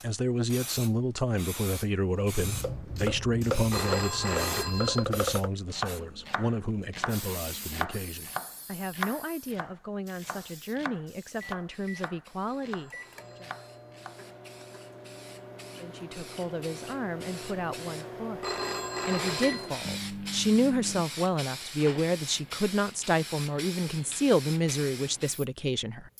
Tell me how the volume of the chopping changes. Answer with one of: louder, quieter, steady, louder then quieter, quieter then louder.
quieter.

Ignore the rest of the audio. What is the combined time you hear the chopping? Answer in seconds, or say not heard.
12 s.